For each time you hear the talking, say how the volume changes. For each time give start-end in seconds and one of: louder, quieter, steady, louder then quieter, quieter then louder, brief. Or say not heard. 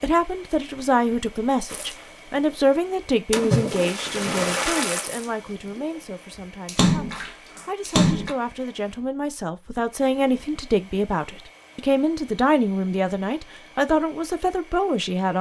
0.0-15.3 quieter then louder.